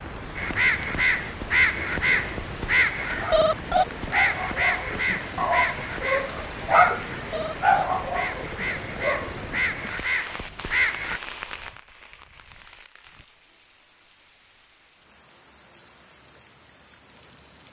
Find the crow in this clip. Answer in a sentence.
The crow can be heard from 0.3 to 11.2 s.